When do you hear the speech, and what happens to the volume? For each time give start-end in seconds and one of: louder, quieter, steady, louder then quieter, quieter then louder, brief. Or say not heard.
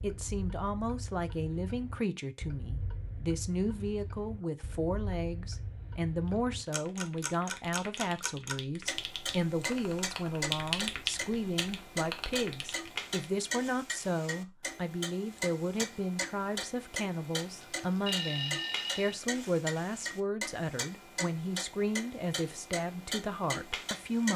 0.0-24.3 steady.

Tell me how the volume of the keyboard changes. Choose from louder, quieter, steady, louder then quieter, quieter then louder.
louder then quieter.